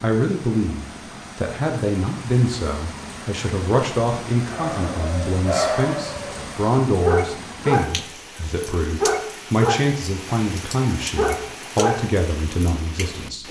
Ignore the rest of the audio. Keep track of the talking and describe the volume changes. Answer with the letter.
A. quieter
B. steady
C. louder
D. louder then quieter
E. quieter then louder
B.